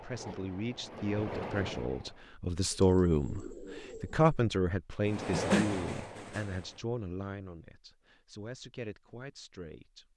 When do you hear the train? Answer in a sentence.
The train can be heard from 0.0 to 2.2 s and from 5.0 to 6.8 s.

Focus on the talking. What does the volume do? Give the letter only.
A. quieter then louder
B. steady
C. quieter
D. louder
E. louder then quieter
E.